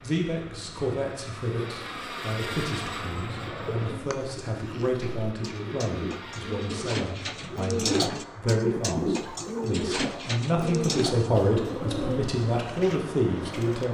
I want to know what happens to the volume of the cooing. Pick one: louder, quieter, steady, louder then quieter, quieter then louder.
louder then quieter.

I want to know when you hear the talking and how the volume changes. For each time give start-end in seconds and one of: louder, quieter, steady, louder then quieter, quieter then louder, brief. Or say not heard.
0.0-13.8 louder.